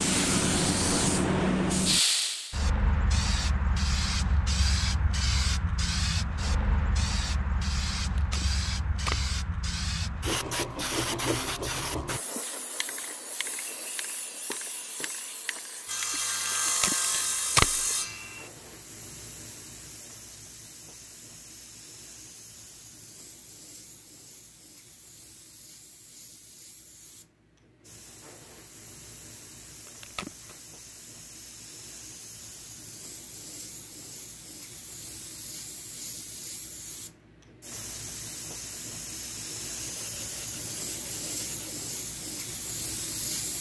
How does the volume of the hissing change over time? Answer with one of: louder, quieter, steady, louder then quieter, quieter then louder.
quieter then louder.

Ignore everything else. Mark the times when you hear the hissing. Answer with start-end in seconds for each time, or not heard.
0.0-43.5.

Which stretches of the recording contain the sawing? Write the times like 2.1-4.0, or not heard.
10.2-12.2, 15.8-18.5, 39.8-41.8.